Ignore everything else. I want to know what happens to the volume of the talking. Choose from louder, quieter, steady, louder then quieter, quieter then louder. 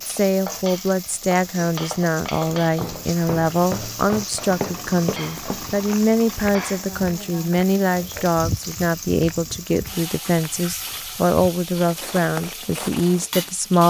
steady.